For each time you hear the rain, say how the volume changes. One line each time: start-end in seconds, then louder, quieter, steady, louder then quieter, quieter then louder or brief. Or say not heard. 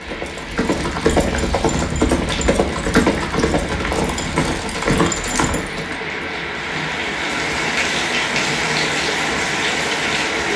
0.0-10.5 louder.